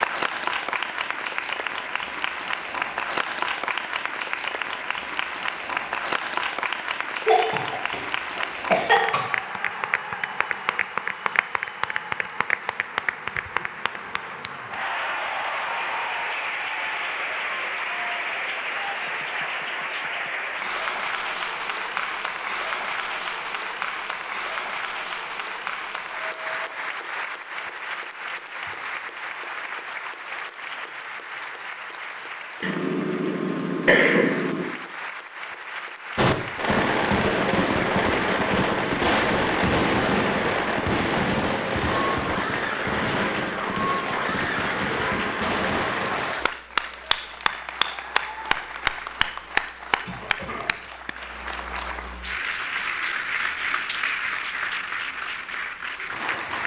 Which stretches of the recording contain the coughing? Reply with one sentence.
The coughing can be heard from 7.2 to 9.2 s, from 32.6 to 34.6 s and from 50.0 to 50.8 s.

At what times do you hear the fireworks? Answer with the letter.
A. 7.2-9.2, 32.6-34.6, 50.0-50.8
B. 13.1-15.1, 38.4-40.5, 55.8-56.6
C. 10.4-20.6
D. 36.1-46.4
D.